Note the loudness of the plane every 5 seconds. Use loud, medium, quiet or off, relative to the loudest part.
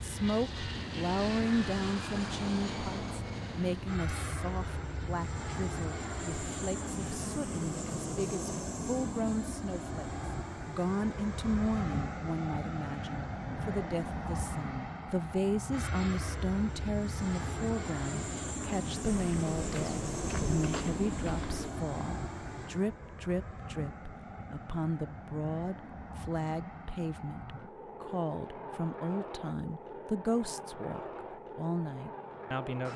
loud, loud, loud, loud, loud, medium, medium.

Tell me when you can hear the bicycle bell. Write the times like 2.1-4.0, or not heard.
not heard.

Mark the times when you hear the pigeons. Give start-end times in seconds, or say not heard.
19.1-21.8.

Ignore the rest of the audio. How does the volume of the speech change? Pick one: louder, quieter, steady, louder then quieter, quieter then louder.
steady.